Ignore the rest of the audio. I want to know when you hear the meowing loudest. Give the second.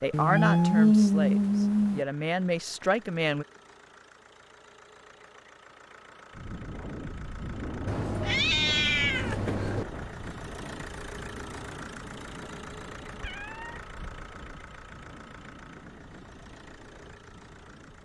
1 s.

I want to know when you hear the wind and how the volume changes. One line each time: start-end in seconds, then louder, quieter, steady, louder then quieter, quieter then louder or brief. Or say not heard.
6.3-17.9 quieter.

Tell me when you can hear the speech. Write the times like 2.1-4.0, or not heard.
0.0-3.5.